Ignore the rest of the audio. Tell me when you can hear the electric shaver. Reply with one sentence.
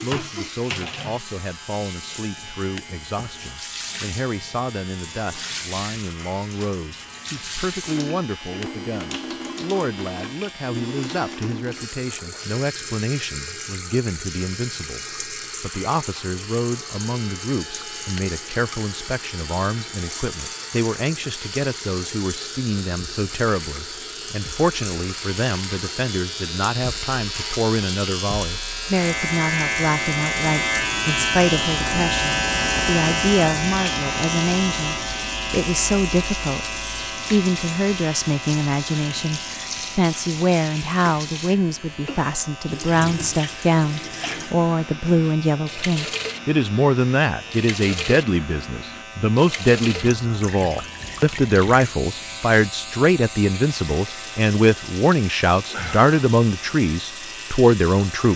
The electric shaver can be heard from 0.0 to 58.3 s.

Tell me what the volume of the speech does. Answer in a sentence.
The loudness of the speech goes up.